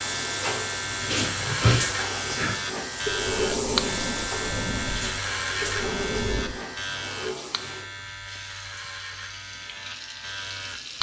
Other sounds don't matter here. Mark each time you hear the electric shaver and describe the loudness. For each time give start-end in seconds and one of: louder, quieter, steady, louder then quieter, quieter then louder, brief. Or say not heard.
0.0-10.9 quieter.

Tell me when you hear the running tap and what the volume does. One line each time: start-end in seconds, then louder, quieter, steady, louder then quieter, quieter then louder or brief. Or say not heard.
0.0-10.9 quieter.